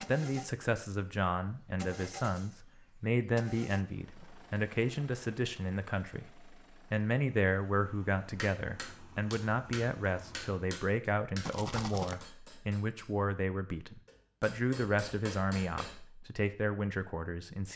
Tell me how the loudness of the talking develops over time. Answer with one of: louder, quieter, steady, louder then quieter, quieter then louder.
steady.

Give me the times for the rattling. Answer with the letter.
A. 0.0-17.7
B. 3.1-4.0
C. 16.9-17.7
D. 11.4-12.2
D.